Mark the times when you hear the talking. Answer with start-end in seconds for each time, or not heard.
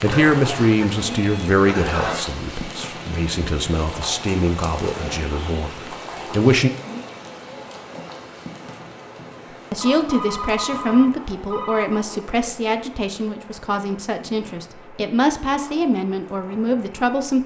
0.0-6.7, 9.7-17.4.